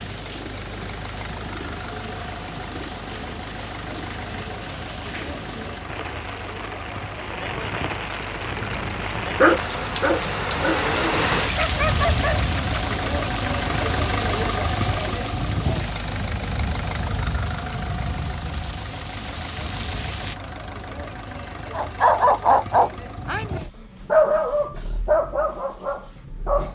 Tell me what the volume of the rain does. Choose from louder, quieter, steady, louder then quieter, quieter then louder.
louder then quieter.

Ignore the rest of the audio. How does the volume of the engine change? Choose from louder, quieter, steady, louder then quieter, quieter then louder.
louder then quieter.